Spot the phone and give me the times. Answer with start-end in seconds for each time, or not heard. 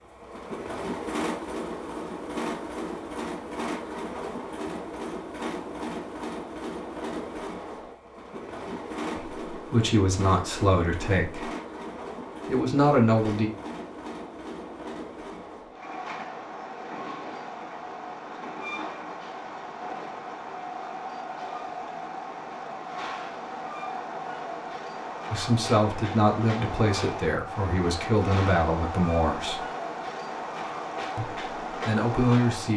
not heard.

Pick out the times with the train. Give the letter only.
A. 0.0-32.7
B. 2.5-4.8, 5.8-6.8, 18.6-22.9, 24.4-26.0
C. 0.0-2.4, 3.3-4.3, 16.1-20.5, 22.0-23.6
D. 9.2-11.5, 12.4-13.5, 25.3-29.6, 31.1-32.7
A.